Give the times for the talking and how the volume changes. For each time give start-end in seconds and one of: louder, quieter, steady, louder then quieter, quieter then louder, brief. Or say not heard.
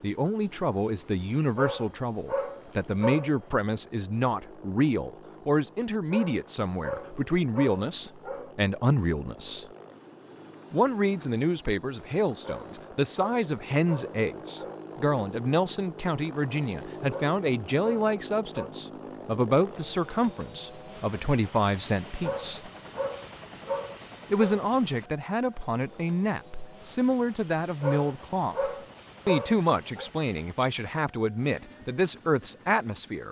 0.0-9.7 steady
10.7-22.7 steady
24.3-33.2 steady.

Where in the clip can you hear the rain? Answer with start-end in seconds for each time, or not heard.
not heard.